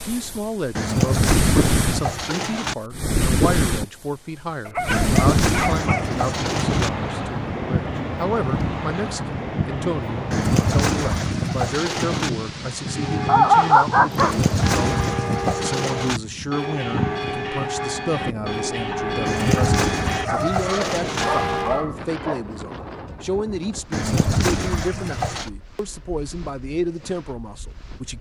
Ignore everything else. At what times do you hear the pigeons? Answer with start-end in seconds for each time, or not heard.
0.8-2.8, 4.9-6.9, 10.3-12.3, 14.2-16.2, 19.2-21.2, 23.9-25.5.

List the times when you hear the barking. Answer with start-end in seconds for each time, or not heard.
4.7-6.0, 13.2-14.4, 20.2-22.4.